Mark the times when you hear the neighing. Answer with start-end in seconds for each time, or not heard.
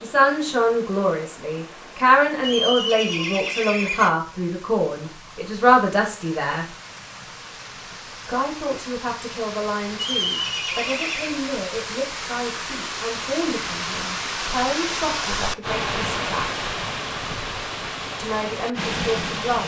2.4-4.1, 9.9-11.4.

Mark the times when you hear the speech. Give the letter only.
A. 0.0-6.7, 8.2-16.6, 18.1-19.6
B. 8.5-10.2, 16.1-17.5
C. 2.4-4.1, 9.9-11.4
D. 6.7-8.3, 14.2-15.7
A.